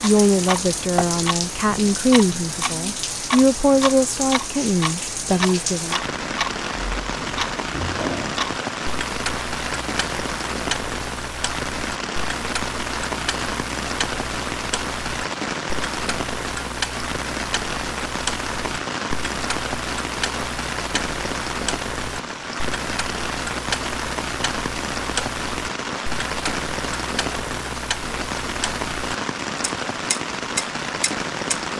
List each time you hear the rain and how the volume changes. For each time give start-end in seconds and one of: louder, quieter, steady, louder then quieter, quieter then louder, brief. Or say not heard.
0.0-31.7 steady.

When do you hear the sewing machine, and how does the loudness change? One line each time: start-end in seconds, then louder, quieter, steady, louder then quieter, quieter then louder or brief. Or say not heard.
not heard.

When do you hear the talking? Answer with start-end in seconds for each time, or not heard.
0.0-6.0.